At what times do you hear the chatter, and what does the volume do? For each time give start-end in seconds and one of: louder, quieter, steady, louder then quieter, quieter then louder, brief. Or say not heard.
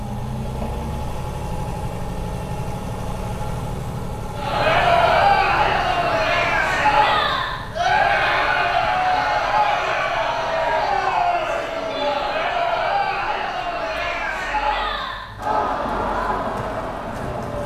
4.3-17.6 quieter.